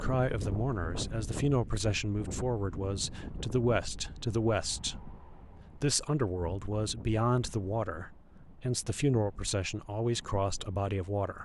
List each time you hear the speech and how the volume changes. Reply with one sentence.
You can hear the speech from 0.0 to 11.4 s, at a steady volume.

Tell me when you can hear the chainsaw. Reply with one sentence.
The chainsaw can't be heard in this clip.